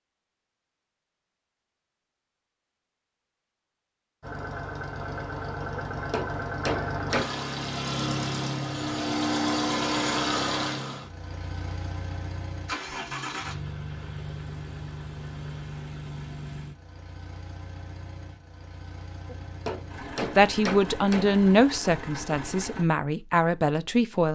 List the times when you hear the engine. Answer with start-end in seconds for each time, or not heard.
4.2-22.9.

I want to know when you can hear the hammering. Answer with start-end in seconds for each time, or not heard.
5.9-7.3, 19.2-21.4.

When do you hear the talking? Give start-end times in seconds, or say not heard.
20.2-24.3.